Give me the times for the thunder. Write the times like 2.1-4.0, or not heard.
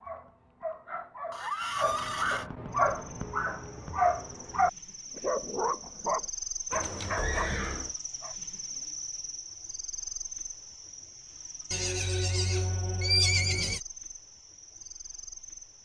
not heard.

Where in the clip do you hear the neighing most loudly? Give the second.
13 s.